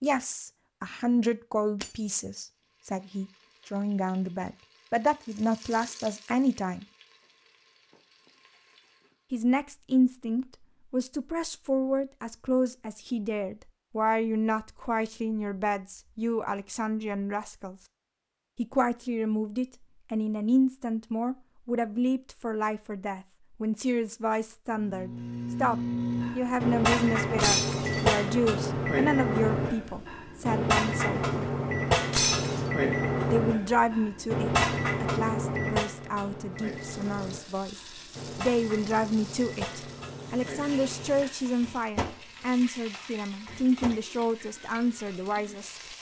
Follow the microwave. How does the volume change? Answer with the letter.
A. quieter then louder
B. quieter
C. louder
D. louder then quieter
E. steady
B.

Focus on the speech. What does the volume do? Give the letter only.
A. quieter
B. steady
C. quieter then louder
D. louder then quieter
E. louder
B.